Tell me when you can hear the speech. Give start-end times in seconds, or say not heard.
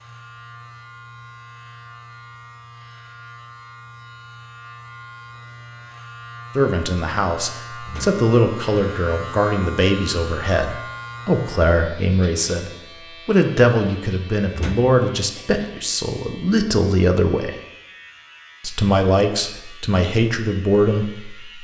6.5-17.6, 18.6-21.5.